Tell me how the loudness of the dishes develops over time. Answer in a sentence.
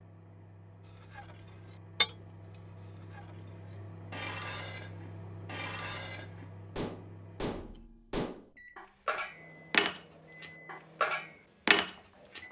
The volume of the dishes goes down, then up.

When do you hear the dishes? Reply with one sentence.
You can hear the dishes from 0.9 to 12.4 s.